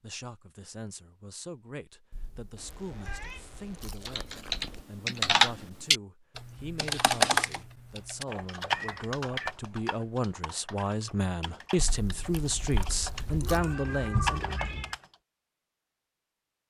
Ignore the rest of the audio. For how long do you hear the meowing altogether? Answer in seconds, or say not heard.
4 s.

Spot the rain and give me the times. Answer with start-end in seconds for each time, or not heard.
not heard.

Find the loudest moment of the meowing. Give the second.
14 s.